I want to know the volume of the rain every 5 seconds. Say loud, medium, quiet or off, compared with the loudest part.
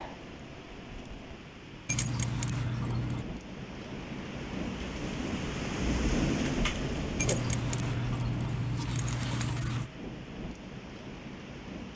medium, loud, medium.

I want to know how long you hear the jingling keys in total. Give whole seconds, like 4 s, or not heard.
4 s.